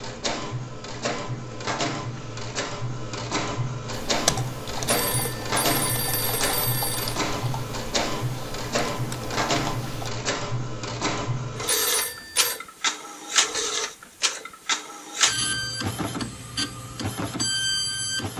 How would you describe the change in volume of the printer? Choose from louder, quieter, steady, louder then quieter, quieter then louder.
steady.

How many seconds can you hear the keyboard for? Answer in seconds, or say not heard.
6 s.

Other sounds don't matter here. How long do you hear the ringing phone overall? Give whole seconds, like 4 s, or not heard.
3 s.